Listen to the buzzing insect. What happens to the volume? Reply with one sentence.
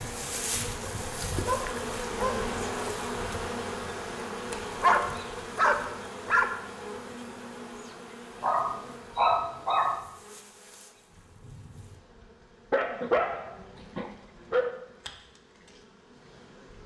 The loudness of the buzzing insect goes down.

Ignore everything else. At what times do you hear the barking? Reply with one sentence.
The barking can be heard from 0.9 to 2.5 s, from 4.8 to 6.6 s, from 8.4 to 10.0 s and from 12.7 to 14.8 s.